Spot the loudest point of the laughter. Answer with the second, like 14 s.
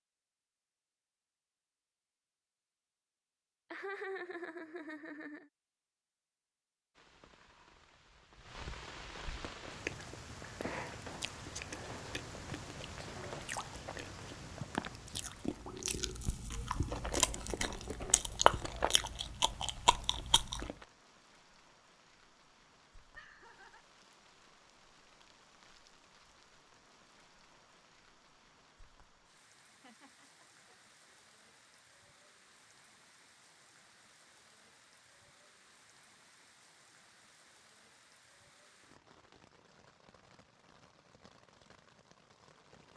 4 s.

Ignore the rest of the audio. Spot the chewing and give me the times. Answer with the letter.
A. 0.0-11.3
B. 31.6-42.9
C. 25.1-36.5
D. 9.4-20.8
D.